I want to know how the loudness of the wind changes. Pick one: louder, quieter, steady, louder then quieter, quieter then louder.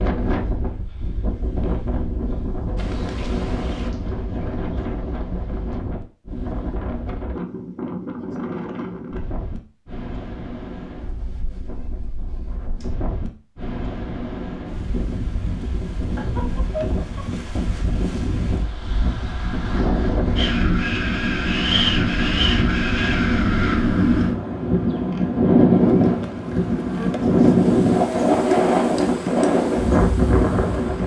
louder.